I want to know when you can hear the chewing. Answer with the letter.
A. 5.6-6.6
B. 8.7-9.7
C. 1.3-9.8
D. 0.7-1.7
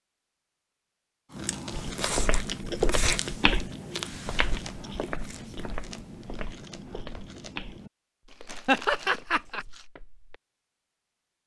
C.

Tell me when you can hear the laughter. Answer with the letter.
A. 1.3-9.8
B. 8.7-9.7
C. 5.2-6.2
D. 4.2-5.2
B.